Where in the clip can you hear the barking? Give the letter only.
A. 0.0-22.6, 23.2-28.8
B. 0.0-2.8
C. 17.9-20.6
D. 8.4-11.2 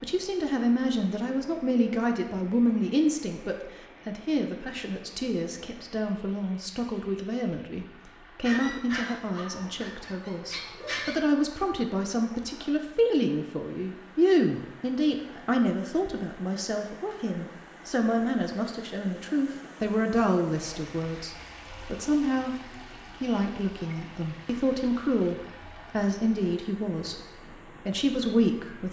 D.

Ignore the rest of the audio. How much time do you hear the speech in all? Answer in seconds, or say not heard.
28 s.